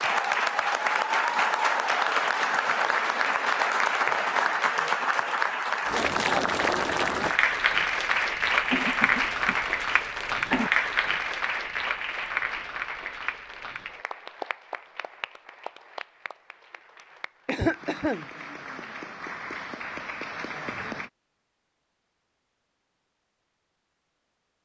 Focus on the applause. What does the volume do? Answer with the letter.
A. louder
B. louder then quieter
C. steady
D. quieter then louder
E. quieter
E.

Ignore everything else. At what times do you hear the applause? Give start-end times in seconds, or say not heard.
0.0-21.1.